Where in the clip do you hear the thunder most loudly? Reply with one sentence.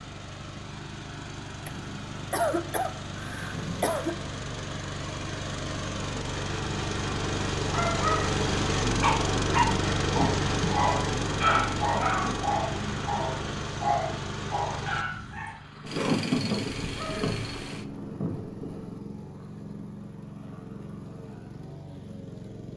The loudest moment of the thunder is at 16 seconds.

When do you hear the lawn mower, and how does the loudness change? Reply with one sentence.
The lawn mower can be heard from 0.0 to 22.7 s, getting louder then quieter.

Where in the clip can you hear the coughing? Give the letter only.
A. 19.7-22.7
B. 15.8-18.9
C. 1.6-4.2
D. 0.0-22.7
C.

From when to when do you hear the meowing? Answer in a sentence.
The meowing can't be heard in this clip.